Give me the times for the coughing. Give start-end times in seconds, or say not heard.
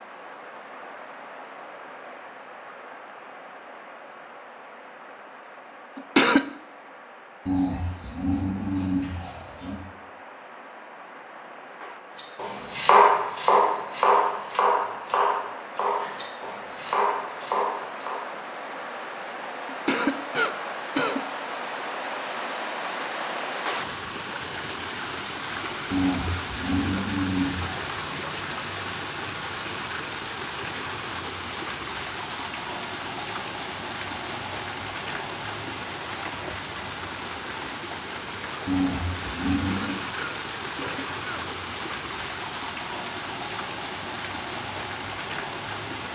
6.0-6.5, 19.6-21.2, 39.5-41.5.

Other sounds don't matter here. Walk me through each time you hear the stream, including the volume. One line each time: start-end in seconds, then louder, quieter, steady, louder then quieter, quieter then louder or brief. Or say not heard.
0.0-46.1 louder.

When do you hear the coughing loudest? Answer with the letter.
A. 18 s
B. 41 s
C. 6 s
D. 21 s
C.